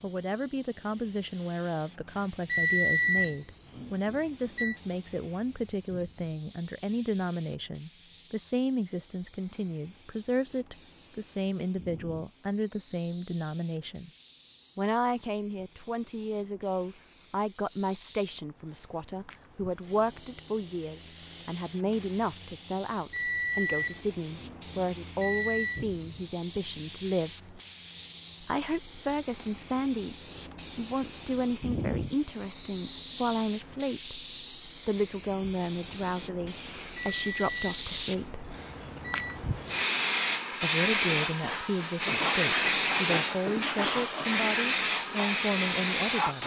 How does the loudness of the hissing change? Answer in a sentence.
The loudness of the hissing goes up.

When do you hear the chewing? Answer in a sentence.
The chewing can't be heard in this clip.